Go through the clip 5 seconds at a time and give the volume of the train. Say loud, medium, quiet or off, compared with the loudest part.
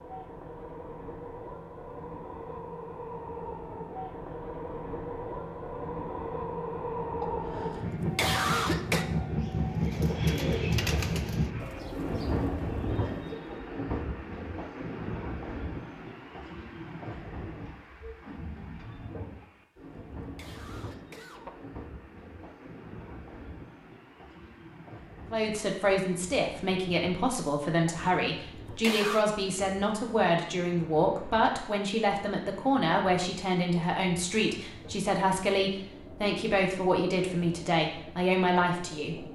medium, loud, loud, medium, quiet, quiet, quiet, quiet.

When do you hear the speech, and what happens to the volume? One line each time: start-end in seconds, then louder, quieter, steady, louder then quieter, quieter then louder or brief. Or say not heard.
25.3-39.2 steady.